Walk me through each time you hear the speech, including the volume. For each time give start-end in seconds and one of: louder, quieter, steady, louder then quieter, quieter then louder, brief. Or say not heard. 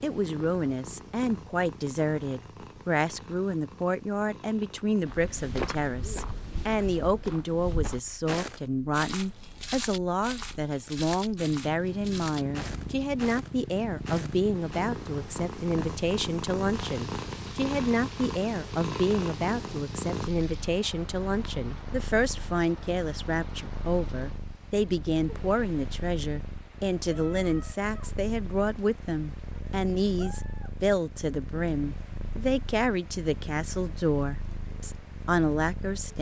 0.0-36.1 steady.